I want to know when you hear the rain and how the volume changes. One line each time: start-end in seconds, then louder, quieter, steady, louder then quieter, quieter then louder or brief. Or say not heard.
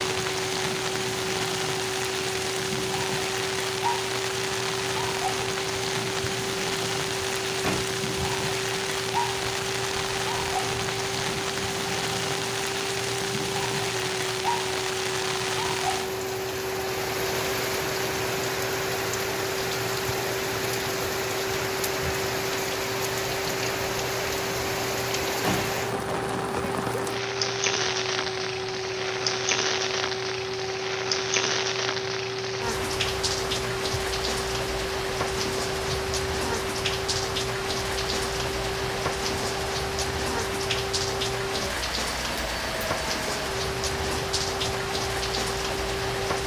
0.0-46.4 steady.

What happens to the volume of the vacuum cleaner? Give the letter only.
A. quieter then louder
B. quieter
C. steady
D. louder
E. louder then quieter
C.